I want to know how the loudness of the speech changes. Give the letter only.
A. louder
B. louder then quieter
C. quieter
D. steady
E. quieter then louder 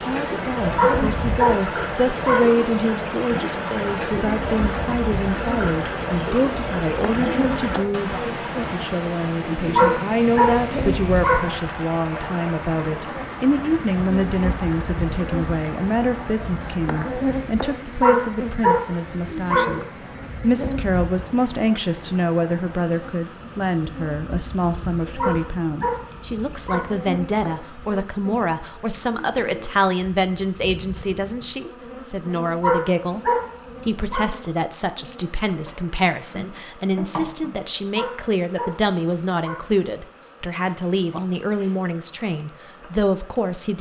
D.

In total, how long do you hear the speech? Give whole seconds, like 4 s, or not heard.
43 s.